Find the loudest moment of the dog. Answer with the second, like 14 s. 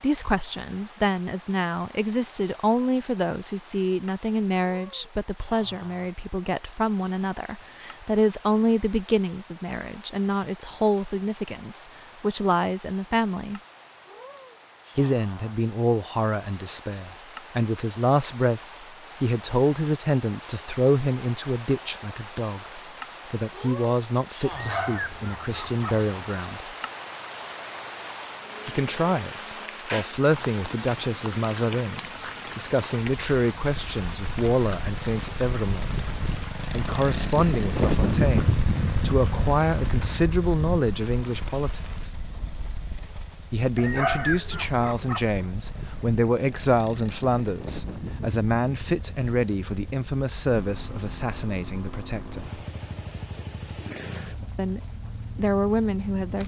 44 s.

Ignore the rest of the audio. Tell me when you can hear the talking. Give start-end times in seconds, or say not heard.
0.0-13.6, 14.9-26.6, 28.6-36.0, 36.7-42.1, 43.5-52.6, 54.5-56.4.